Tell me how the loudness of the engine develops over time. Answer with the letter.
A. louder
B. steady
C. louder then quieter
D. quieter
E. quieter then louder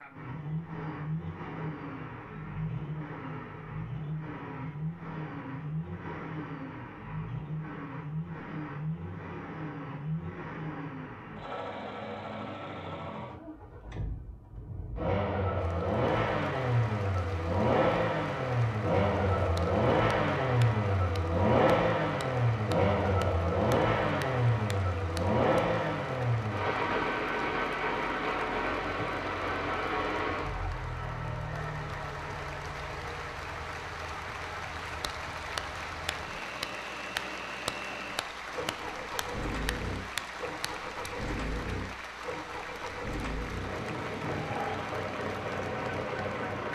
C.